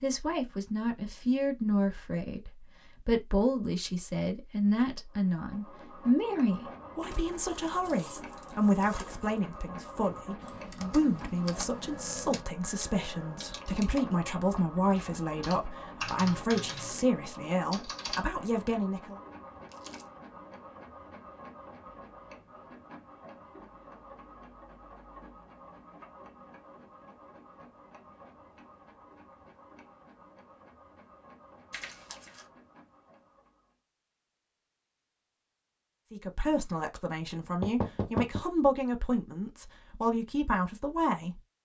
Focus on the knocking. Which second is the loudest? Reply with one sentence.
The loudest moment of the knocking is at 38 seconds.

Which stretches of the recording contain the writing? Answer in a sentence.
The writing can't be heard in this clip.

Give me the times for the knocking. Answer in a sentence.
The knocking can be heard from 13.9 to 14.6 s and from 37.6 to 38.5 s.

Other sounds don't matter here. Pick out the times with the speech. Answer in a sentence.
You can hear the speech from 0.0 to 19.1 s and from 36.1 to 41.4 s.